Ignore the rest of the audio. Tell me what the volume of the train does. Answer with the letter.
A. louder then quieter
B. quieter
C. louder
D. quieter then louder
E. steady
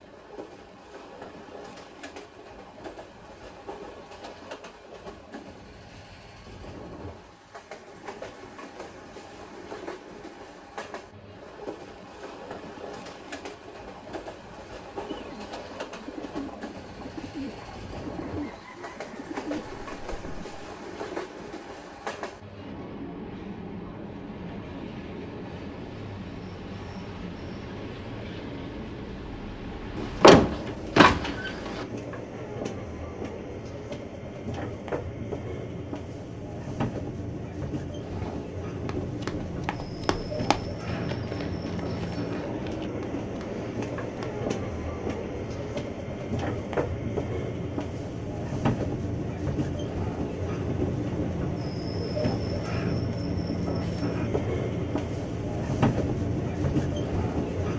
C.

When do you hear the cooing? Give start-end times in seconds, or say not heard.
14.9-20.6.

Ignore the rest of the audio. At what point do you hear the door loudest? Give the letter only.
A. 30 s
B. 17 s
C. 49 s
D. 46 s
A.